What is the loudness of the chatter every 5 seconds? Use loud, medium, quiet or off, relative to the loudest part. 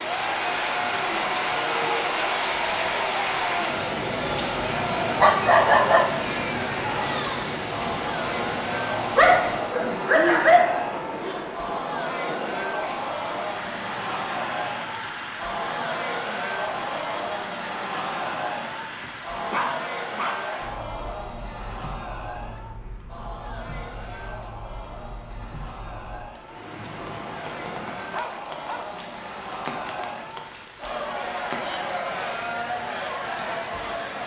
loud, loud, loud, loud, medium, medium, loud.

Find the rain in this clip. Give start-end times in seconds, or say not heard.
0.0-34.2.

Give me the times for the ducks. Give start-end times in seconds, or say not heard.
not heard.